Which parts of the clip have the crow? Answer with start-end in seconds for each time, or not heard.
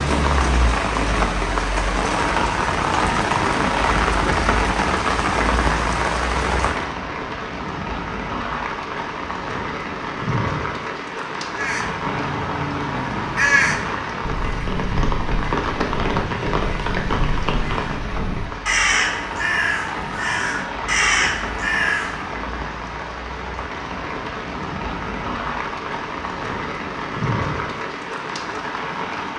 11.6-22.2.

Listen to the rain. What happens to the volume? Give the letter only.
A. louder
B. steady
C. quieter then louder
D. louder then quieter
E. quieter
E.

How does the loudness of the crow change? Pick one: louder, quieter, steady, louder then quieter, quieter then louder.
quieter then louder.